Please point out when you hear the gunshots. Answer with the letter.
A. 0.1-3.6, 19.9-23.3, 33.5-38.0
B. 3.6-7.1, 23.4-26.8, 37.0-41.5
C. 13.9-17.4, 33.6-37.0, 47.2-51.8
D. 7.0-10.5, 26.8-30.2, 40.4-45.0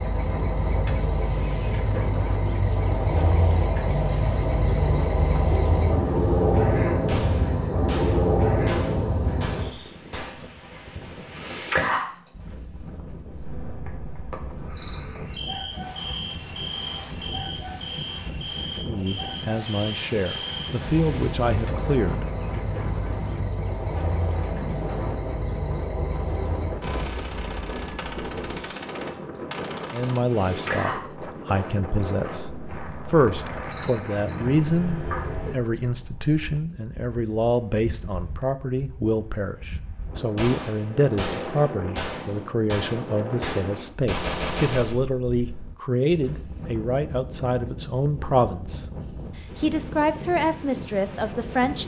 D.